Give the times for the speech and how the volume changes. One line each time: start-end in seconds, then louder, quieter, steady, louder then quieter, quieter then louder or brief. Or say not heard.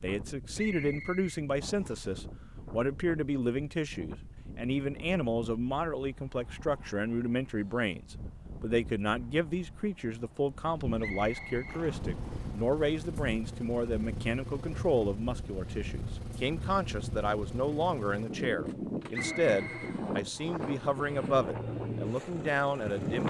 0.0-23.2 steady.